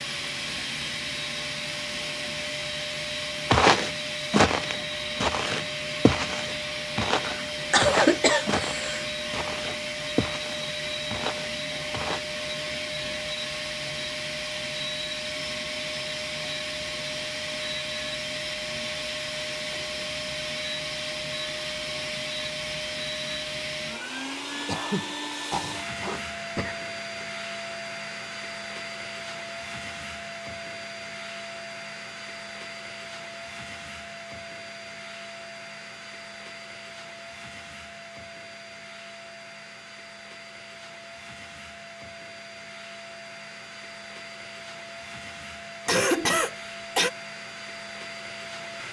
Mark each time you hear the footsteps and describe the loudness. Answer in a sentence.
You can hear the footsteps from 3.5 to 12.2 s, getting quieter.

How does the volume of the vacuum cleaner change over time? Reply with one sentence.
The volume of the vacuum cleaner goes down.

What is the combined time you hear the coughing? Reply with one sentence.
You can hear the coughing for 6 seconds altogether.